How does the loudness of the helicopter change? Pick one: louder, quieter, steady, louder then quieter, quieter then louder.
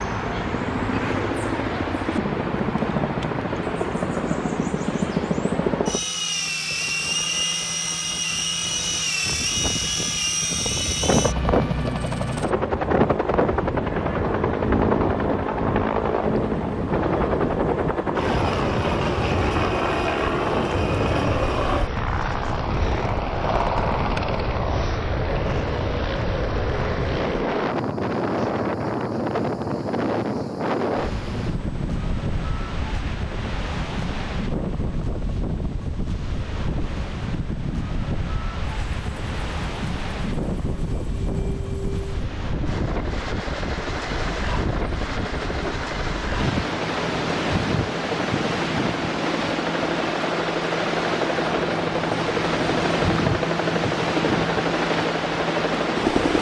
quieter then louder.